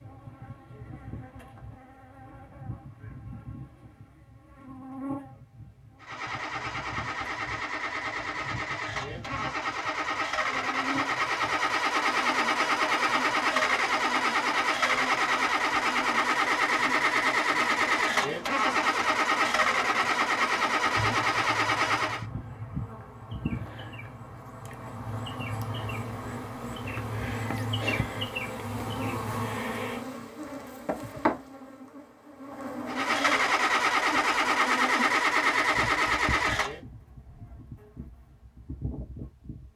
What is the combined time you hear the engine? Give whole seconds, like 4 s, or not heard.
20 s.